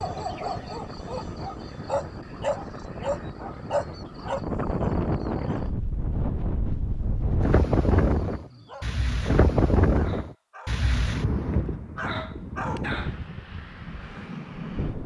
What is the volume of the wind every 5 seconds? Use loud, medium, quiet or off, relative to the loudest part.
medium, loud, medium.